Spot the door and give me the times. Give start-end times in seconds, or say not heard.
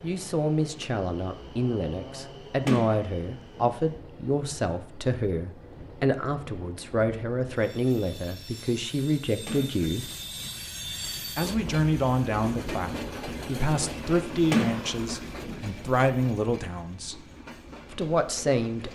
2.6-3.8, 9.4-10.6, 14.5-15.7.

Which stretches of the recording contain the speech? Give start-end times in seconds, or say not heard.
0.0-10.1, 11.3-17.2, 17.9-18.9.